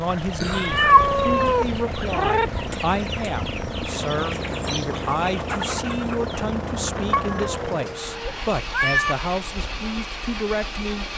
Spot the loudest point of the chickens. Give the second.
2 s.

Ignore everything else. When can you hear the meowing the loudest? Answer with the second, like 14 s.
1 s.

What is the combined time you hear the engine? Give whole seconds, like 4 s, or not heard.
11 s.